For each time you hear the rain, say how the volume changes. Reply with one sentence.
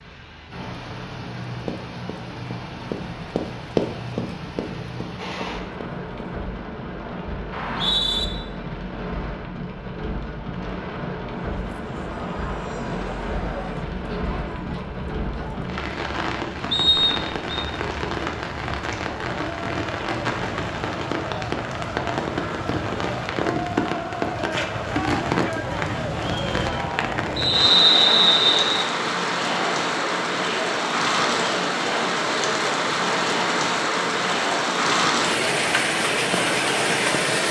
The rain can be heard from 0.0 to 37.4 s, getting louder.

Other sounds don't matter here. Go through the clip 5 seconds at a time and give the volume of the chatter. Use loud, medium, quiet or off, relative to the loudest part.
off, off, medium, medium, loud, loud, loud, loud.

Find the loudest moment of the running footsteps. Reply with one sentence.
The volume of the running footsteps peaks at 4 seconds.